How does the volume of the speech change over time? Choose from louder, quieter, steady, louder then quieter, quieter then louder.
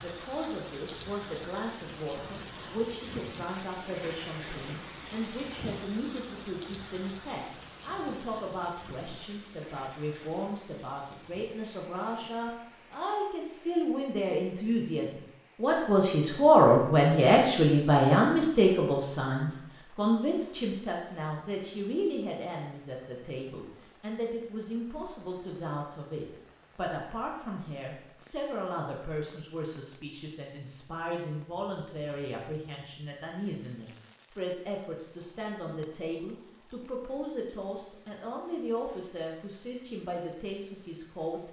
louder then quieter.